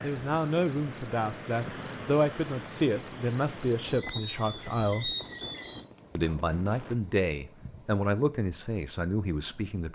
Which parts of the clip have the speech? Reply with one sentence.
You can hear the speech from 0.0 to 5.2 s and from 6.2 to 9.9 s.